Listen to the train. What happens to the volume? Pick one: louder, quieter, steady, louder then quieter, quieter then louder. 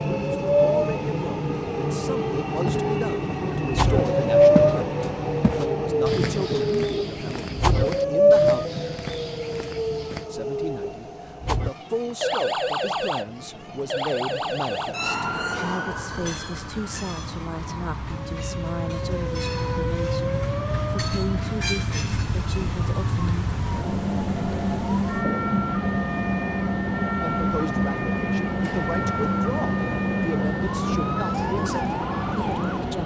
quieter then louder.